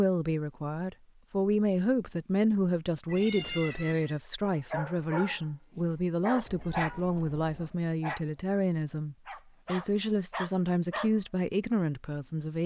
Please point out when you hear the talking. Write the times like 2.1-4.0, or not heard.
0.0-12.6.